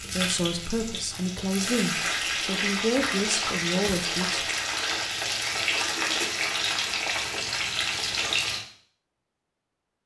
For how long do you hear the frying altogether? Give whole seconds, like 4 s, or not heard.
9 s.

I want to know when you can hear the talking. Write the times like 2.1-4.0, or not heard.
0.1-4.5.